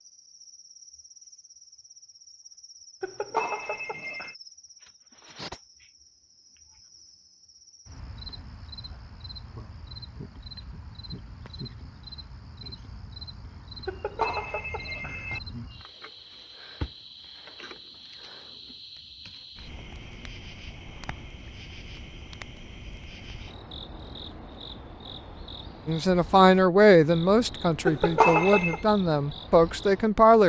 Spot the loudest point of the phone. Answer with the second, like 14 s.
28 s.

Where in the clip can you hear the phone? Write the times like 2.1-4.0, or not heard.
3.0-4.3, 13.8-15.4, 27.9-28.8.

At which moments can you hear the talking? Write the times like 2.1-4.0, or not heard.
25.9-30.4.